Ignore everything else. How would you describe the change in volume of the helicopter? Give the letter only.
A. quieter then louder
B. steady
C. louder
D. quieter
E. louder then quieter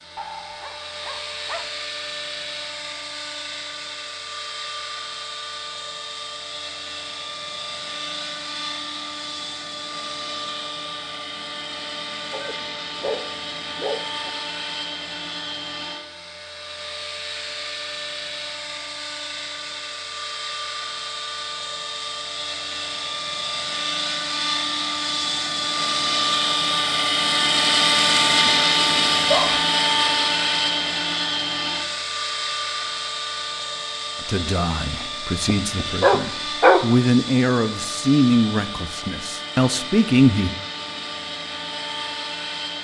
E.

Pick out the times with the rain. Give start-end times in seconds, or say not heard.
not heard.